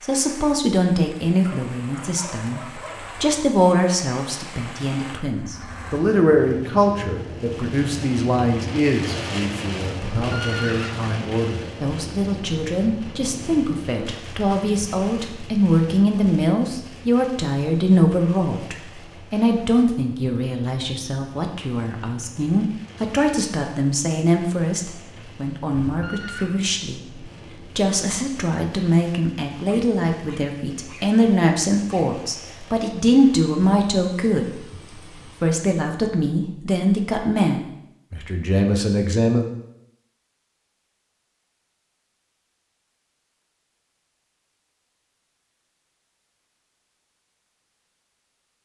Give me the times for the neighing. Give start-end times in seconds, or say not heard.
10.0-11.2, 25.8-26.6.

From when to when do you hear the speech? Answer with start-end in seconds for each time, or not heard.
0.0-34.6, 35.4-39.5.